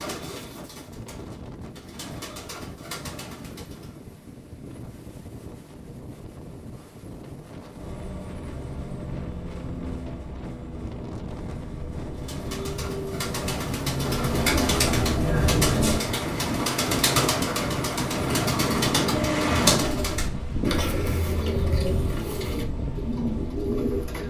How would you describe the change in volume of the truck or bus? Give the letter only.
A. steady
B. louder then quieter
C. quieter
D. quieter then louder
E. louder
B.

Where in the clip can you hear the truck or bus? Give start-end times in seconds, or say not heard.
7.8-24.2.